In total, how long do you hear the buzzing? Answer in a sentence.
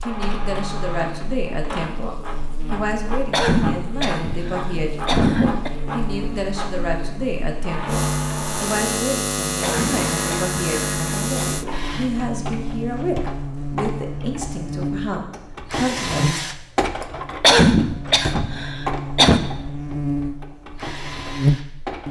You can hear the buzzing for 22 seconds altogether.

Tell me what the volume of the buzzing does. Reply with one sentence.
The volume of the buzzing goes up.